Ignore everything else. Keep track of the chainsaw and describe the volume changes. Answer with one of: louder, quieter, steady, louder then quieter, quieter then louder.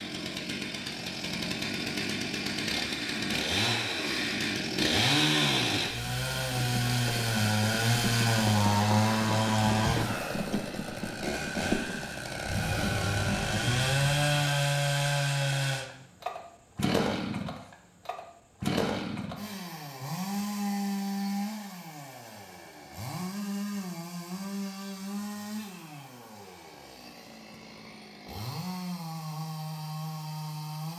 quieter.